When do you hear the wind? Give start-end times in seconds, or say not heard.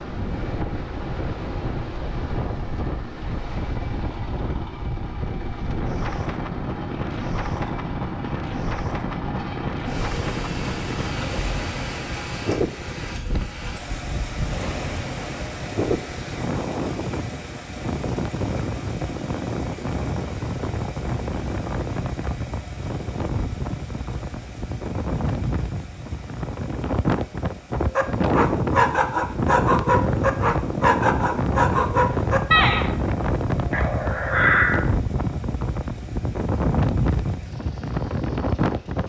0.0-39.0.